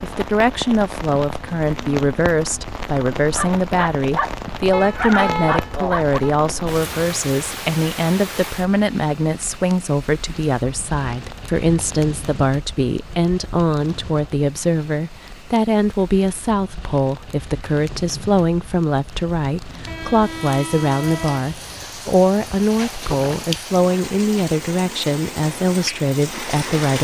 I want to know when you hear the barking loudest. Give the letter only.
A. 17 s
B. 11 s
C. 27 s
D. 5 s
D.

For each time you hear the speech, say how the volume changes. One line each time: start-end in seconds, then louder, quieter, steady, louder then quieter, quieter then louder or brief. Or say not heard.
0.0-26.9 steady.